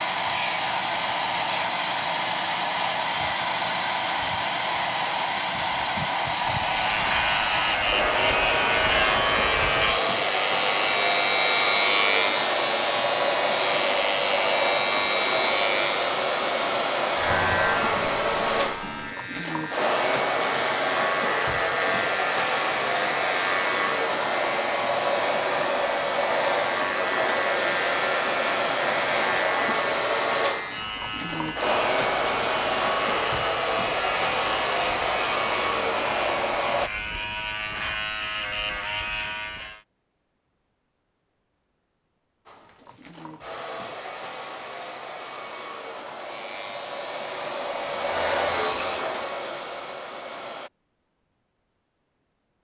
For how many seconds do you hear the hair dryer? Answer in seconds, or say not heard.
45 s.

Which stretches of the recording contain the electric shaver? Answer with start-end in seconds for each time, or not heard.
6.6-39.8, 46.1-49.2.